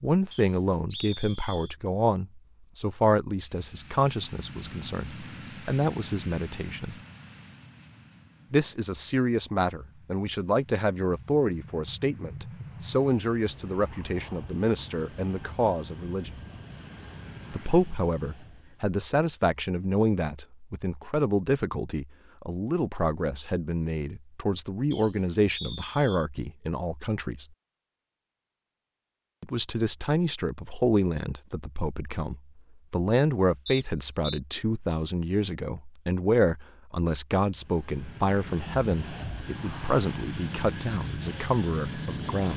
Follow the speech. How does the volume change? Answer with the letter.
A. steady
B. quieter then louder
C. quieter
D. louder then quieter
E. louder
A.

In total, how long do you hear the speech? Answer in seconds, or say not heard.
38 s.